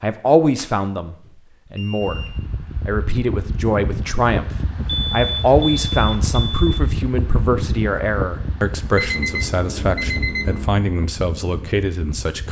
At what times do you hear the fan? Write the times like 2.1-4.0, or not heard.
1.9-12.4.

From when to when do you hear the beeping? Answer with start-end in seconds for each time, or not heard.
0.6-2.4, 4.8-6.8, 8.9-10.8.